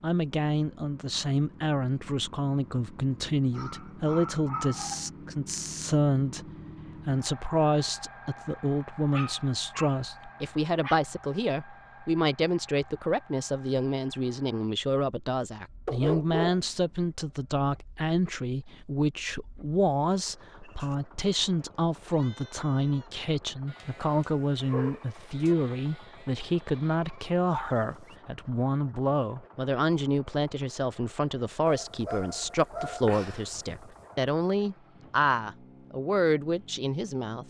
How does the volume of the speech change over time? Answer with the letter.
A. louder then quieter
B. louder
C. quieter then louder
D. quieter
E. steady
E.